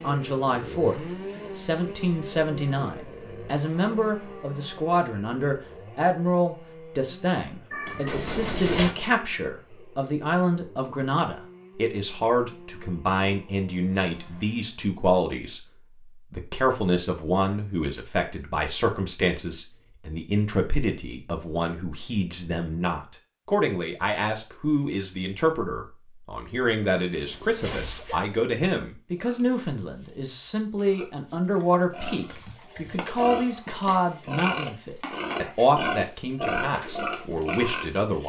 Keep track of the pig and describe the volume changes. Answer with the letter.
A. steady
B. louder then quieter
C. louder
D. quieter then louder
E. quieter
C.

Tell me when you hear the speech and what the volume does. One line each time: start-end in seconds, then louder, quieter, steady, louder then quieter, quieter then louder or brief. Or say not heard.
0.0-15.7 steady
16.3-38.2 steady.